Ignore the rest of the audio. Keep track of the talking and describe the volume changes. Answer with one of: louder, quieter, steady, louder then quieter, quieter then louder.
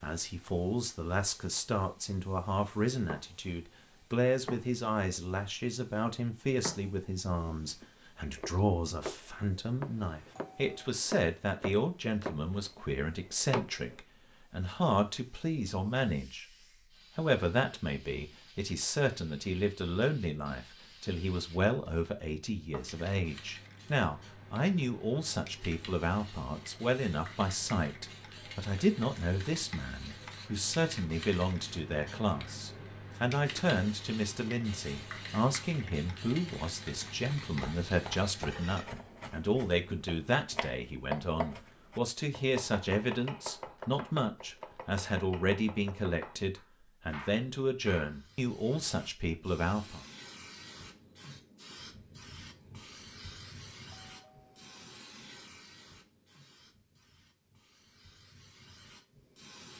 steady.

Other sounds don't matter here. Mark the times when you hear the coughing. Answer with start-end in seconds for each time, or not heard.
not heard.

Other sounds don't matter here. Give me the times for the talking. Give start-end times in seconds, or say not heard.
0.0-16.6, 17.1-50.0.